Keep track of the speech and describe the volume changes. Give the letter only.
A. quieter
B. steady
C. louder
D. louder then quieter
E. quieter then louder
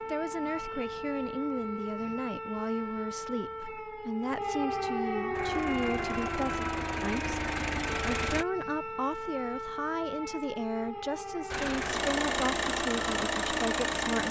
B.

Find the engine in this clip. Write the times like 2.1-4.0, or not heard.
5.3-8.4, 11.5-14.2.